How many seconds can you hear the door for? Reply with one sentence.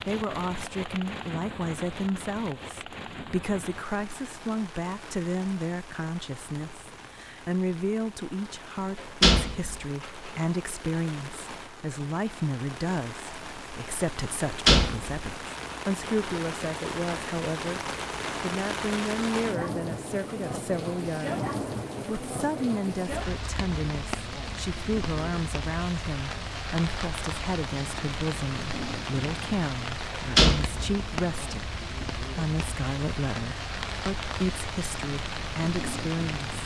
The door can be heard for 4 seconds in total.